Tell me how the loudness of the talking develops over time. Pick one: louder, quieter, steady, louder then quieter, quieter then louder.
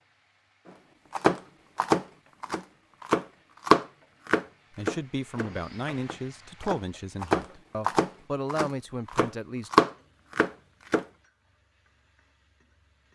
quieter then louder.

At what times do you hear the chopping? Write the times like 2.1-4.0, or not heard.
1.1-11.1.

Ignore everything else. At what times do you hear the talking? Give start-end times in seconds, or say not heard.
4.8-9.7.